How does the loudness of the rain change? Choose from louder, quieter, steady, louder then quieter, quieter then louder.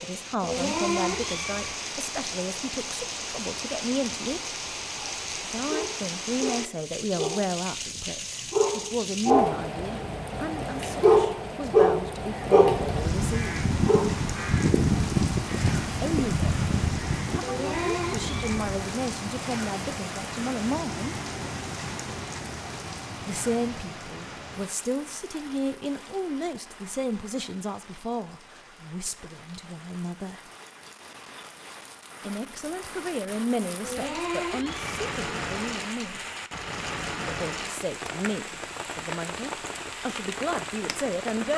quieter then louder.